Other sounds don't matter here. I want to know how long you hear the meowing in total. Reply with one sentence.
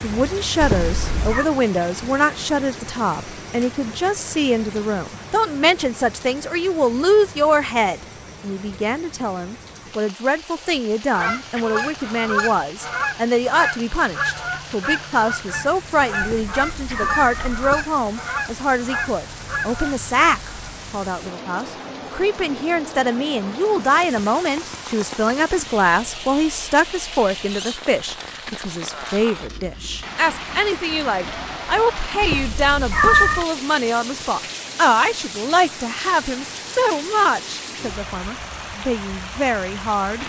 You can hear the meowing for 4 seconds altogether.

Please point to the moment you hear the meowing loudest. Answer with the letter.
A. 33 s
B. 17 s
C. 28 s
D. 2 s
A.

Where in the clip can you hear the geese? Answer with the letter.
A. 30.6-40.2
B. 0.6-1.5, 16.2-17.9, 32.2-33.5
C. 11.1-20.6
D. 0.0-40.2
C.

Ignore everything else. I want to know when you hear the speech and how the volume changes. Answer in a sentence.
The speech can be heard from 0.0 to 40.2 s, at a steady volume.